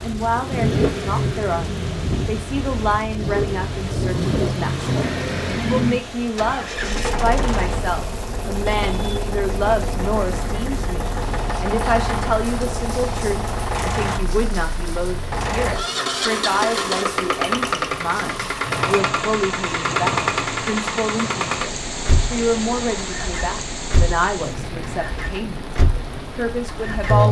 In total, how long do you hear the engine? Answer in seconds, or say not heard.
27 s.